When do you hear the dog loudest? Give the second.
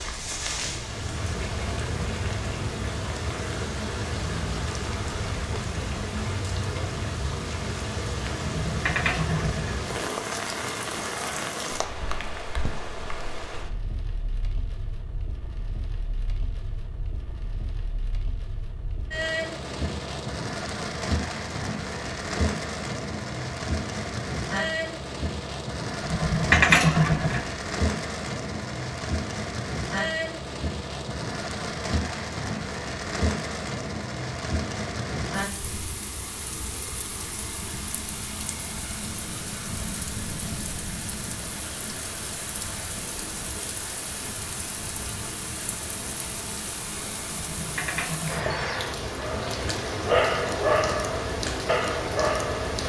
50 s.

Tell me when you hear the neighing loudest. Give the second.
27 s.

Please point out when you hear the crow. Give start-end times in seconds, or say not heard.
not heard.